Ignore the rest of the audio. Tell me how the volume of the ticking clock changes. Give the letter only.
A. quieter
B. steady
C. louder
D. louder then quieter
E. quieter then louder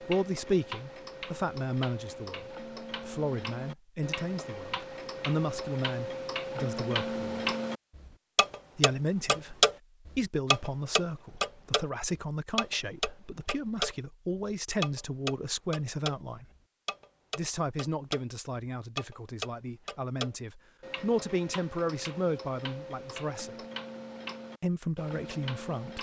D.